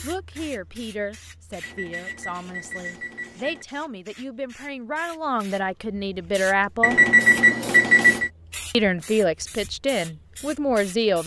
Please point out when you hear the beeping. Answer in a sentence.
You can hear the beeping from 1.6 to 3.6 s and from 6.8 to 8.3 s.